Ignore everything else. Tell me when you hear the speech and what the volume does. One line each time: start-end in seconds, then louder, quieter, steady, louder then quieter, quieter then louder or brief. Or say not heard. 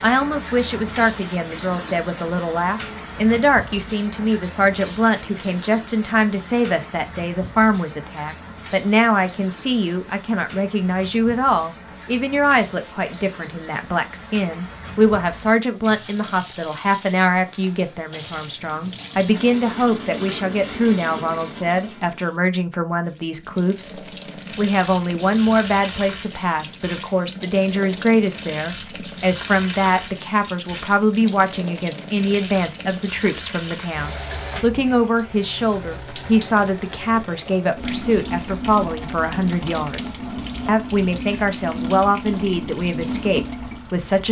0.0-44.2 steady.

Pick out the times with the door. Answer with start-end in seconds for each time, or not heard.
not heard.